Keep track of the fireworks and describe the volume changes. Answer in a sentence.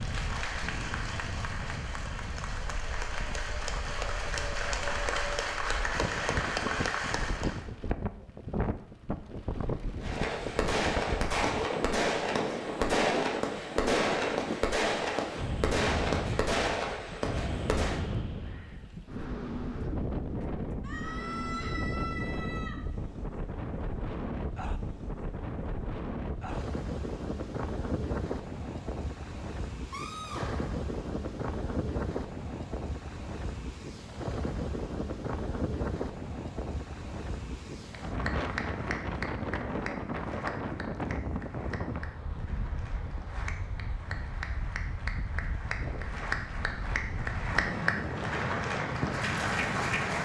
The volume of the fireworks stays about the same.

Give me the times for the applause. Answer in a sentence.
You can hear the applause from 0.0 to 7.7 s and from 37.9 to 50.1 s.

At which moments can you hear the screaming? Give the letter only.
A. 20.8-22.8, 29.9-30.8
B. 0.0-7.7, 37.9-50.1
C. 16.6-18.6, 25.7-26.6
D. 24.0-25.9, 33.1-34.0
A.